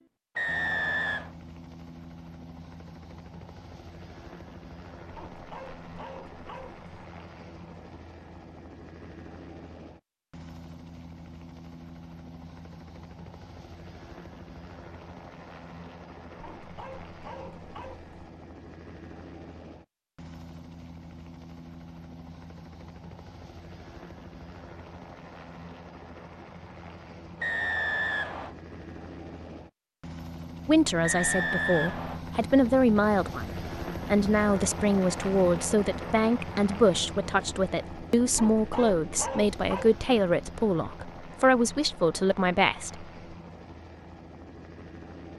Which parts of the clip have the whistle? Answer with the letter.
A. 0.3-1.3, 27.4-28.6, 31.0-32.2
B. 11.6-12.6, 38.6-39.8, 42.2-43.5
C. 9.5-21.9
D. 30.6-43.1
A.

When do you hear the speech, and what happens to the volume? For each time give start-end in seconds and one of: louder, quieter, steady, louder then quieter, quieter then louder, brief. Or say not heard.
30.6-43.1 steady.